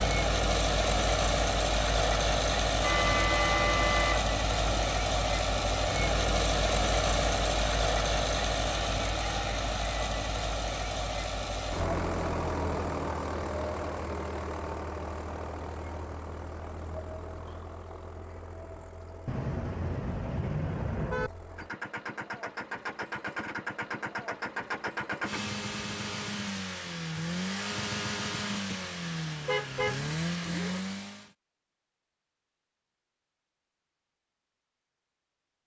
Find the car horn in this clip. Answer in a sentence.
The car horn can be heard from 2.8 to 4.8 s, from 19.2 to 21.3 s and from 29.4 to 30.8 s.